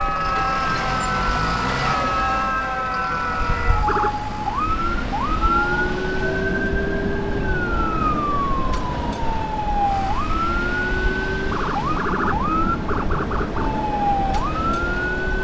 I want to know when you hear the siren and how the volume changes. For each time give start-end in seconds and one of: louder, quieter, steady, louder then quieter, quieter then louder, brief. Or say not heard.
0.0-15.3 steady.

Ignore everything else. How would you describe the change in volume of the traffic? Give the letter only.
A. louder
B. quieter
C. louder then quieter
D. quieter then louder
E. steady
E.